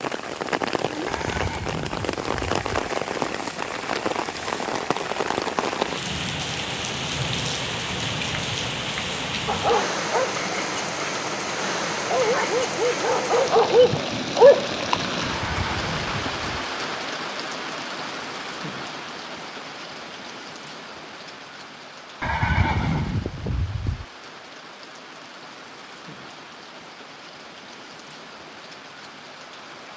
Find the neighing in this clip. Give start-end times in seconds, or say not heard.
1.1-2.9, 15.2-16.6, 22.2-24.1.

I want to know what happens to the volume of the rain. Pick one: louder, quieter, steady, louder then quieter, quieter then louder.
quieter.